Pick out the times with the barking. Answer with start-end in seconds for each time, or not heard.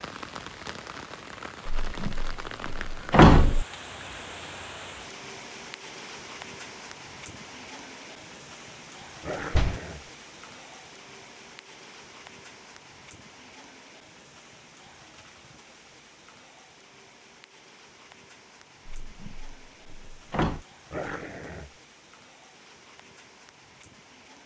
9.2-10.1, 20.9-21.7.